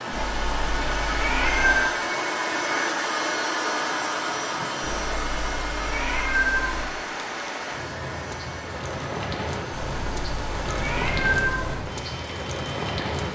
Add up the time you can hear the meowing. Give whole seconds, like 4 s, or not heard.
6 s.